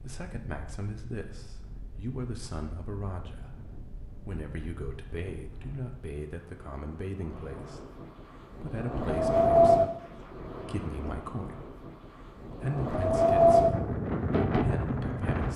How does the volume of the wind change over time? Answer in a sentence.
The loudness of the wind goes up.